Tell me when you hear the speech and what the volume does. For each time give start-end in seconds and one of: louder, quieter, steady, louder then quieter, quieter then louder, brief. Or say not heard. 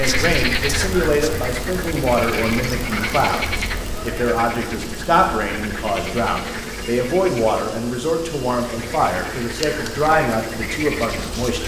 0.0-11.6 steady.